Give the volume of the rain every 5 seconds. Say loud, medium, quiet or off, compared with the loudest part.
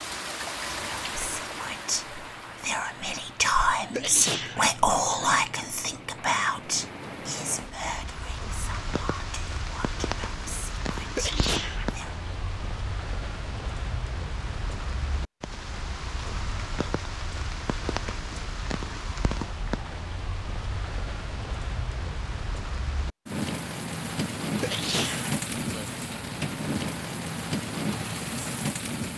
medium, medium, medium, medium, loud, loud.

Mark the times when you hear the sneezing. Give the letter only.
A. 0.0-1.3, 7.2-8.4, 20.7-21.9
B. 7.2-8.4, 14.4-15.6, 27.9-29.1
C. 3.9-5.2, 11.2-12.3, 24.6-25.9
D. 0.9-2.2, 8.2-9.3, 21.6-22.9
C.